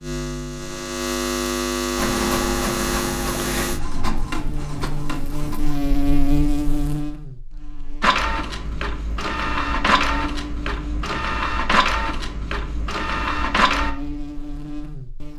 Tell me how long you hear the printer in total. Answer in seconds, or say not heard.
10 s.